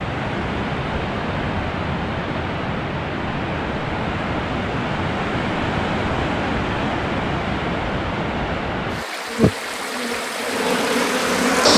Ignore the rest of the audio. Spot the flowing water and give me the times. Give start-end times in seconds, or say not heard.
0.0-11.7.